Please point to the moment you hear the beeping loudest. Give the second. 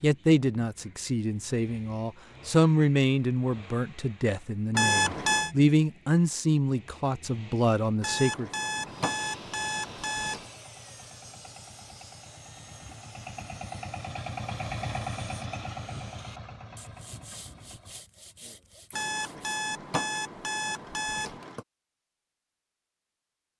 5 s.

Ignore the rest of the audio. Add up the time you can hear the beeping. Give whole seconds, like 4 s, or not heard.
6 s.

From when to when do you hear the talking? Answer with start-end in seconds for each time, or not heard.
0.0-8.5.